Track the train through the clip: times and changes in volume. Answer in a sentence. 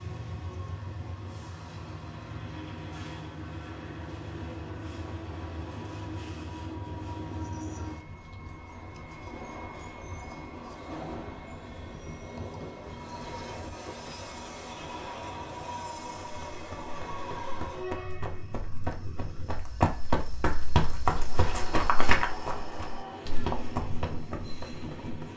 You can hear the train from 0.0 to 25.3 s, at a steady volume.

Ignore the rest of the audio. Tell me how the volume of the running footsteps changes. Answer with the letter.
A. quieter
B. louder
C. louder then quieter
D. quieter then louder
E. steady
C.